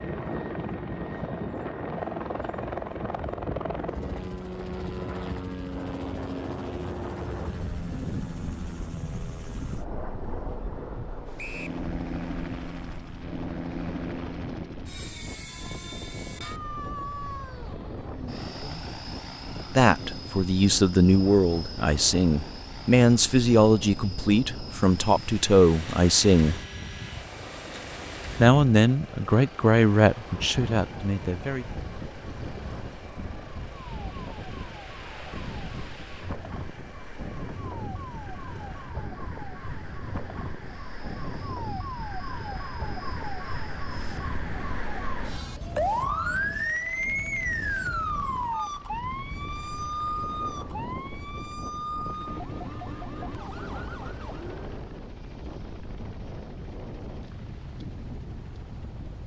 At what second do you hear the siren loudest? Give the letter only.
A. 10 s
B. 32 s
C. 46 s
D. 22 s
C.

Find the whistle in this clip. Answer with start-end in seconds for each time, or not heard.
11.3-11.8.